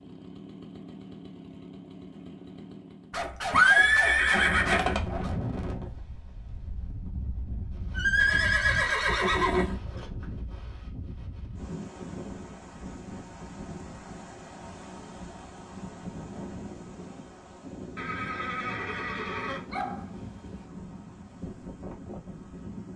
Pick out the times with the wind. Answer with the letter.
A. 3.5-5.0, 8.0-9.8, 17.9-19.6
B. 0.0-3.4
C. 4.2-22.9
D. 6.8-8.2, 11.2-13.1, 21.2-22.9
C.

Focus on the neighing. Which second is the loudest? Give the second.
4 s.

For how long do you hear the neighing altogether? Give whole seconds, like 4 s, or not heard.
5 s.